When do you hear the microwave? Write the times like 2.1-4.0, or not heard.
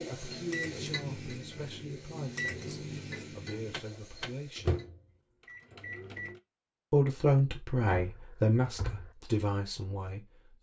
0.0-6.4.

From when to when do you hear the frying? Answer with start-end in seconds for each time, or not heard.
0.0-4.8.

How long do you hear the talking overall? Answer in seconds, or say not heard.
8 s.